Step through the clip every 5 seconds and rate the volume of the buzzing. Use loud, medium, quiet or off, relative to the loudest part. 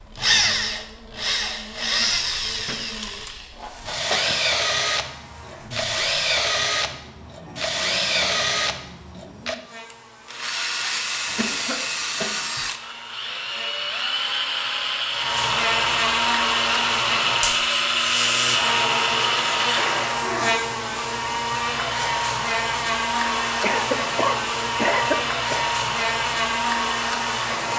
quiet, quiet, quiet, loud, loud, loud.